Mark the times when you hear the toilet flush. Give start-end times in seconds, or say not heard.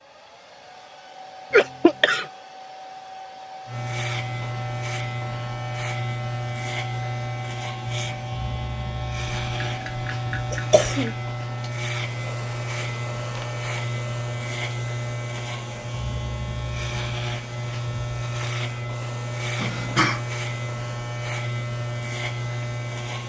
not heard.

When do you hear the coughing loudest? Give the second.
2 s.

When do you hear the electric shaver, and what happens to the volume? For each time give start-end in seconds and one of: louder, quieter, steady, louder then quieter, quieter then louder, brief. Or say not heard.
3.6-23.2 steady.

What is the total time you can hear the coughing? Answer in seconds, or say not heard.
3 s.